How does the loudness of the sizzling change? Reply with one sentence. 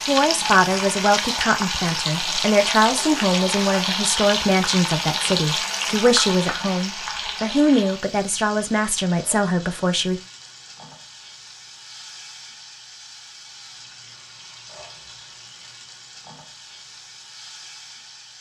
The volume of the sizzling goes down.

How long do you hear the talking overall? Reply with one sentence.
You can hear the talking for 10 seconds altogether.